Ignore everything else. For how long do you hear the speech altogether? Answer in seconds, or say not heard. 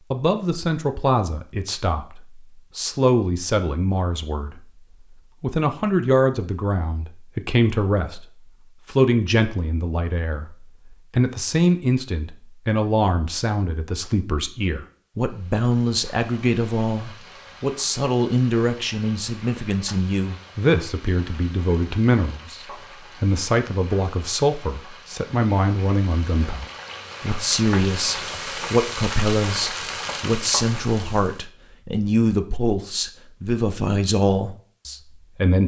34 s.